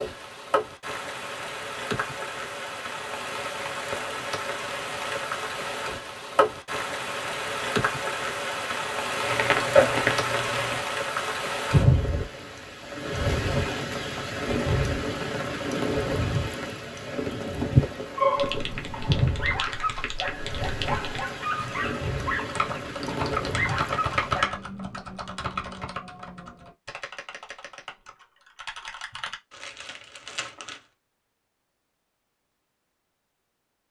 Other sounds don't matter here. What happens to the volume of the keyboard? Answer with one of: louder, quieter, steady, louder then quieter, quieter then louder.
louder then quieter.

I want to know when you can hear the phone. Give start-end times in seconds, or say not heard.
not heard.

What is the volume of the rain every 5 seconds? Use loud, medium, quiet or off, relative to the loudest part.
medium, loud, loud, loud, medium, off, off.